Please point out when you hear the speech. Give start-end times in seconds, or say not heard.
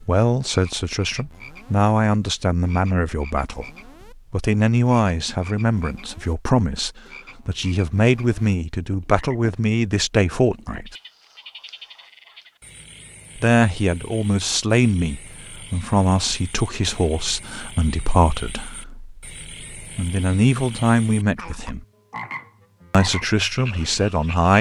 0.0-3.7, 4.3-10.9, 13.3-21.9, 22.9-24.5.